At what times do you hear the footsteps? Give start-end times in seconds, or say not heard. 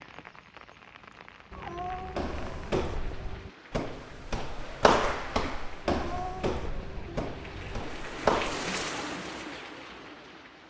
2.0-8.7.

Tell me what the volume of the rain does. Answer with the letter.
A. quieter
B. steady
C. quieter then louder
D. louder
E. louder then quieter
D.